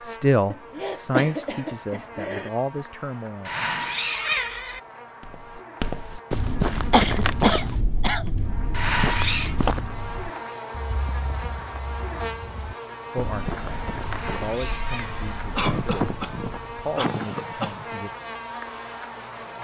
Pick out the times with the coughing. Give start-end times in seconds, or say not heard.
0.5-2.5, 6.9-8.3, 15.6-17.9.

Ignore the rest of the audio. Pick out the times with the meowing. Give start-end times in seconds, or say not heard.
3.5-4.8, 8.7-9.6, 14.1-15.2.